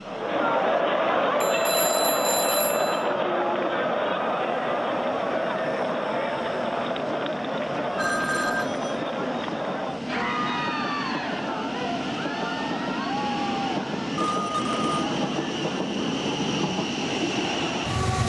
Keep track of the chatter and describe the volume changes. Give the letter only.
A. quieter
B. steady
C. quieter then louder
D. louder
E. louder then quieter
A.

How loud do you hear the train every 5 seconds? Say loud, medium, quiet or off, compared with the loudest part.
quiet, medium, loud, loud.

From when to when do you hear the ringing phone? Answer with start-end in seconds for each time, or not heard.
1.4-3.1, 8.0-8.9, 14.2-15.1.